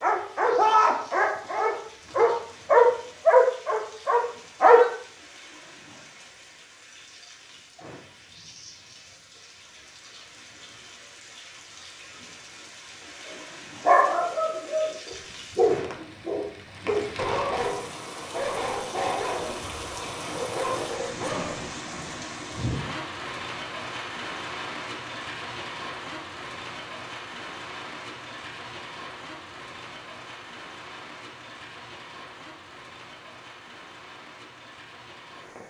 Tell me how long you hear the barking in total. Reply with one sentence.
You can hear the barking for 13 seconds altogether.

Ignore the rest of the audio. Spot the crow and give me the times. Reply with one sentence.
You can't hear the crow here.